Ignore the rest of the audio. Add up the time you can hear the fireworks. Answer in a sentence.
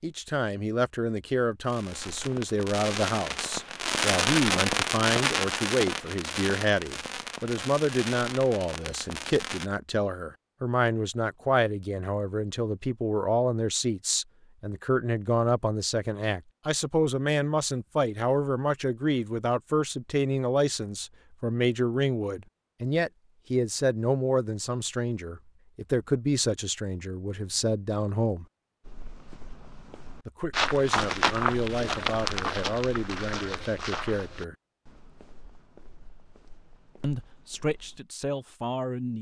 The fireworks can be heard for 8 seconds in total.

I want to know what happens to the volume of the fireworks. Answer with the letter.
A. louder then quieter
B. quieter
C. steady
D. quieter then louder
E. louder
A.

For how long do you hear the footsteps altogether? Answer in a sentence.
You can hear the footsteps for 9 seconds altogether.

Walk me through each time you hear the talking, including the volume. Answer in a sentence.
You can hear the talking from 0.0 to 28.4 s, at a steady volume; from 30.2 to 34.5 s, at a steady volume; and briefly from 37.0 to 39.1 s.